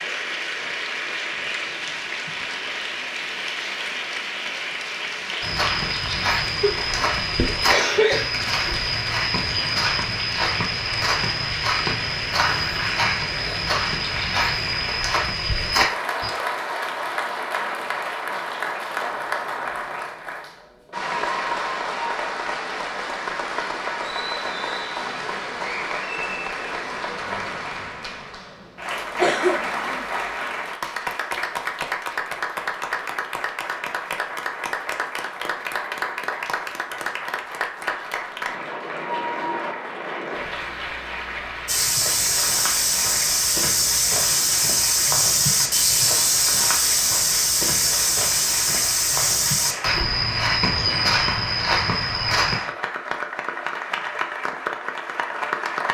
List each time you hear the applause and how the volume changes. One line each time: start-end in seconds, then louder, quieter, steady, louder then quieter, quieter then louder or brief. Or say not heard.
0.0-55.8 steady.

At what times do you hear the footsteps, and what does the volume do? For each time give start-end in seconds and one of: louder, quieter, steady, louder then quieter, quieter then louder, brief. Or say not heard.
5.4-16.3 steady
41.6-52.6 steady.